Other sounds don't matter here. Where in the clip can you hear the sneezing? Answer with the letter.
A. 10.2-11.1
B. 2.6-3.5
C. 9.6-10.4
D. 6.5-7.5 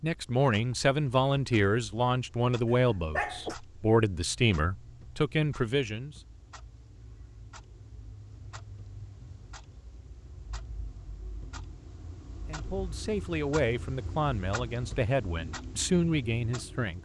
B.